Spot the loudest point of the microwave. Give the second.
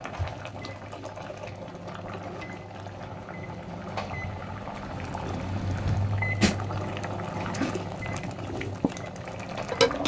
6 s.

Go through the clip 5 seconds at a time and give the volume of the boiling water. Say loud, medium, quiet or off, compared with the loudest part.
medium, loud.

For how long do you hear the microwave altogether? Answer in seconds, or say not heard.
10 s.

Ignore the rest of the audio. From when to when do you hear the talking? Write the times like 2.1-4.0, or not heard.
not heard.